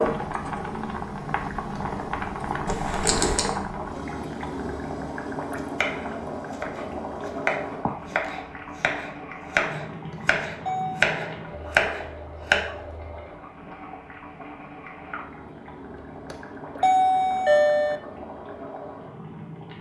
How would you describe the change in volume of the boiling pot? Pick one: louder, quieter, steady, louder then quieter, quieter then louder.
quieter.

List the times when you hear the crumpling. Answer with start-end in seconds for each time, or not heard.
2.6-3.5.